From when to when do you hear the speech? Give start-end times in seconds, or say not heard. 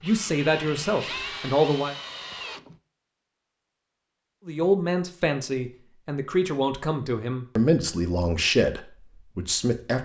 0.0-1.9, 4.5-10.0.